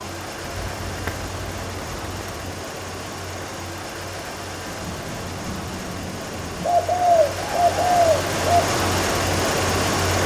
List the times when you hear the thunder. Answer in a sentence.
You can hear the thunder from 4.7 to 6.7 s.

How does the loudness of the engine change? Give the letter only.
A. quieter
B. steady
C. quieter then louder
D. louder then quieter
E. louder
E.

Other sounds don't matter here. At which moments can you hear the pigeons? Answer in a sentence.
You can hear the pigeons from 0.5 to 2.5 s and from 6.6 to 8.6 s.